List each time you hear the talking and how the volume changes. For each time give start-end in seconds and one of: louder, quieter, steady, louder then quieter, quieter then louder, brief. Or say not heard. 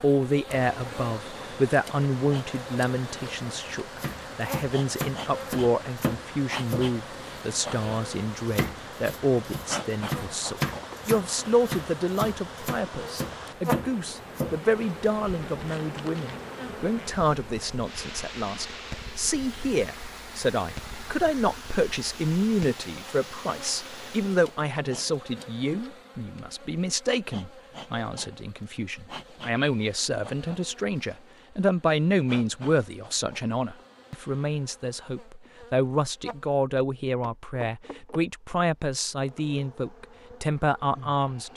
0.0-41.5 steady.